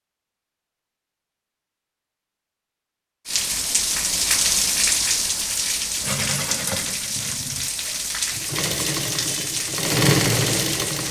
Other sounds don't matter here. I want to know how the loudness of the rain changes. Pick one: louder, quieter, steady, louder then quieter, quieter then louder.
quieter.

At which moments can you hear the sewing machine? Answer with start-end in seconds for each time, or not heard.
6.0-11.0.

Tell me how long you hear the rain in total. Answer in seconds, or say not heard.
8 s.